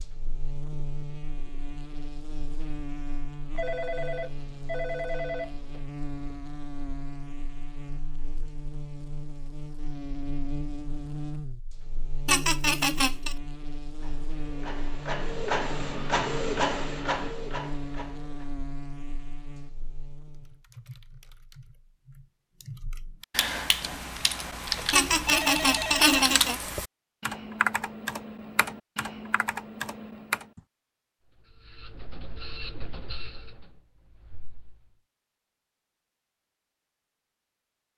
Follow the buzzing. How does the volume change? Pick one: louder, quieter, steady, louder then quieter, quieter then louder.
steady.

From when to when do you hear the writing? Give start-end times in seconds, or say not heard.
not heard.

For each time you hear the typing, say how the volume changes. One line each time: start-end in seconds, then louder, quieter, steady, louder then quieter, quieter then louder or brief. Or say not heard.
20.4-30.6 louder then quieter.